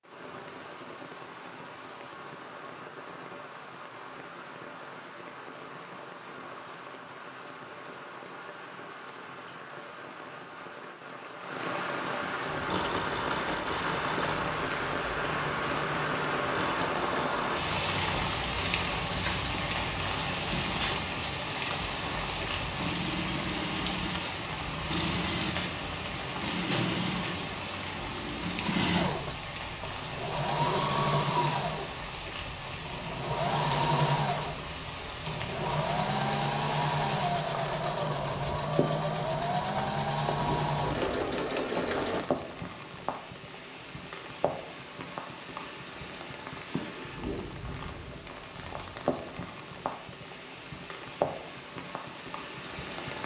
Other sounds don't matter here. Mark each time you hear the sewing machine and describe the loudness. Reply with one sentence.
The sewing machine can be heard from 12.4 to 42.3 s, getting louder.